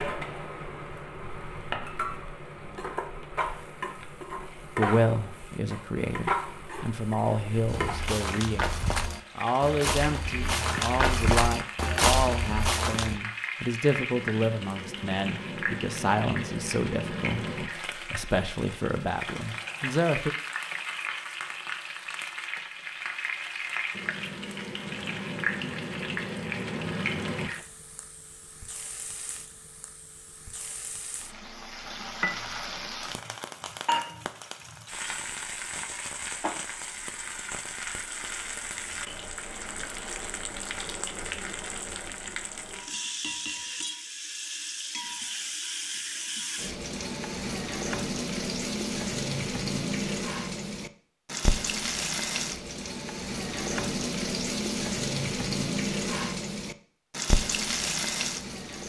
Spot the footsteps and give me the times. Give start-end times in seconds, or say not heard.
7.7-13.2.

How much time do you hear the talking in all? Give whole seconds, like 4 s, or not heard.
16 s.